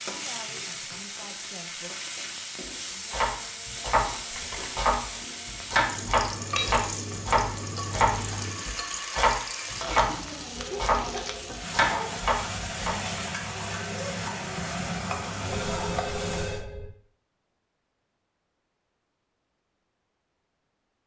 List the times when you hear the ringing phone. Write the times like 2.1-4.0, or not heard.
4.3-4.8, 9.9-11.6, 15.6-16.9.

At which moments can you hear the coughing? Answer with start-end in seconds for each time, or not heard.
not heard.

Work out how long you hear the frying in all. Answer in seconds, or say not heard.
17 s.